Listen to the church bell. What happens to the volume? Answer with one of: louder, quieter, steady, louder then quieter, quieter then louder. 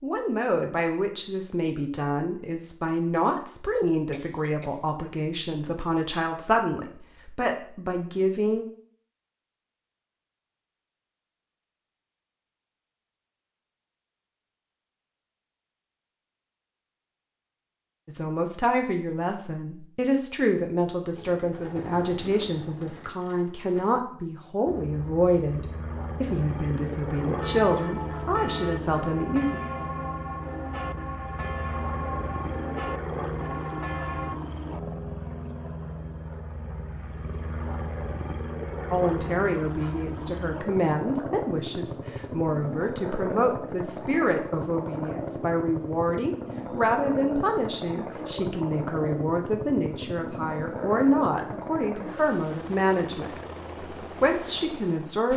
steady.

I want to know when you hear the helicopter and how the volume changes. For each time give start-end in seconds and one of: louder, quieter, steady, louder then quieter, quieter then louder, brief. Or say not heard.
24.6-55.3 steady.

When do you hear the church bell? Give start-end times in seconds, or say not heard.
27.4-34.4.